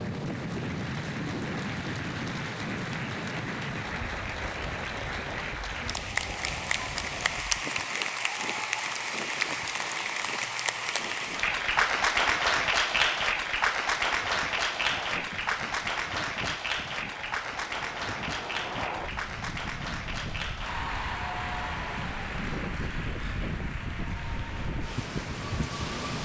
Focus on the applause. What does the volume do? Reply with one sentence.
The volume of the applause goes up, then down.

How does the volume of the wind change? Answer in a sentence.
The loudness of the wind goes down, then up.